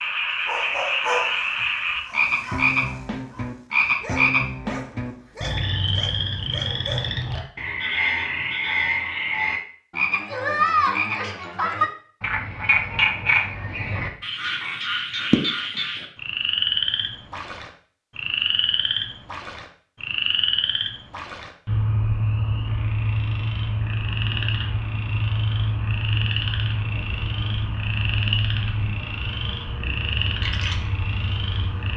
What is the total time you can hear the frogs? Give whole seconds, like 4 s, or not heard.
32 s.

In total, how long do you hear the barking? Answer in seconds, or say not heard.
7 s.